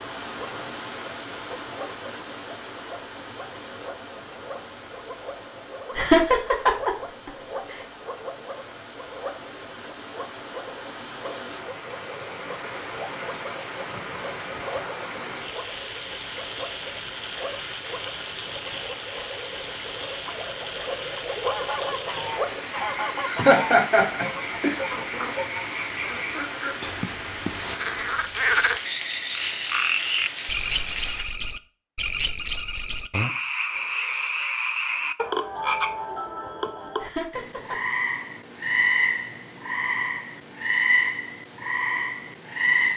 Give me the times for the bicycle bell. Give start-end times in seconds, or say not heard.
not heard.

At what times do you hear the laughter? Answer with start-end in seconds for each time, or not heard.
6.0-7.3, 23.2-24.8, 37.0-37.8.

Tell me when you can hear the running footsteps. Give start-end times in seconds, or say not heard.
not heard.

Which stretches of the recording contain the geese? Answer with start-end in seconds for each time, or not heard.
21.4-26.9.